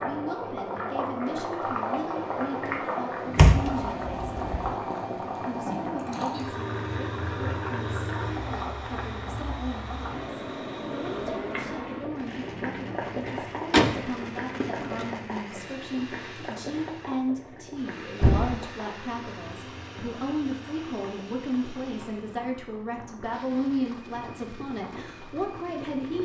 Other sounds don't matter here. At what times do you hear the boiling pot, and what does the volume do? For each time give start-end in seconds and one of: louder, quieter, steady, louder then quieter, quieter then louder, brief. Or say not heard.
0.0-26.1 quieter.